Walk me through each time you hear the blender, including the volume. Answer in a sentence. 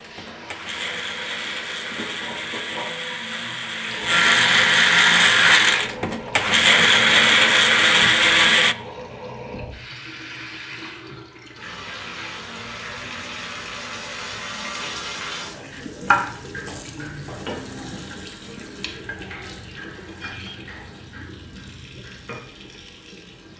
The blender can be heard from 0.0 to 8.8 s, getting louder.